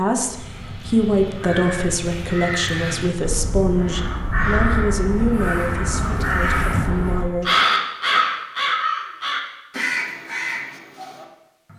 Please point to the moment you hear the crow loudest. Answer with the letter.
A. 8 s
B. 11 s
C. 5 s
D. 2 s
A.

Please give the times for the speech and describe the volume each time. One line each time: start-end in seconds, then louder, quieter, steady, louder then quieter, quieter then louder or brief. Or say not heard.
0.0-7.5 quieter.